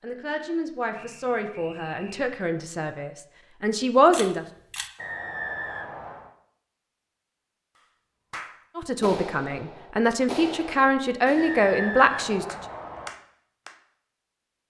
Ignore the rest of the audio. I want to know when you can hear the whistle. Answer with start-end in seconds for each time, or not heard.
0.9-2.4, 5.0-6.3, 11.3-13.1.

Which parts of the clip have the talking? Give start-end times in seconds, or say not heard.
0.0-4.5, 8.8-12.6.